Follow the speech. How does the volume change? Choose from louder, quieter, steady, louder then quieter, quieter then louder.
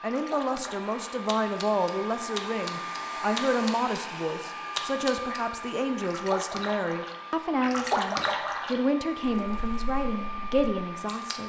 steady.